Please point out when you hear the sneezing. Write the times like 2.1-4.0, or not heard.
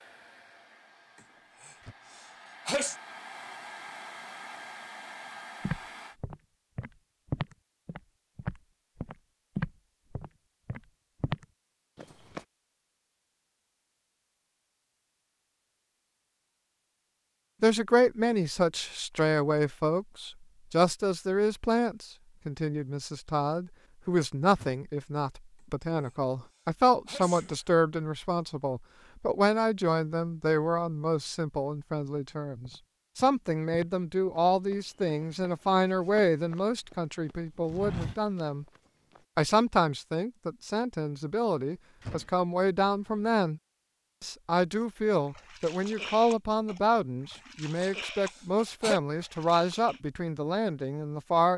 1.6-3.0, 26.0-27.6, 47.8-49.0.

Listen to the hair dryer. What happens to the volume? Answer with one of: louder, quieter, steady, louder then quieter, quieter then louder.
louder.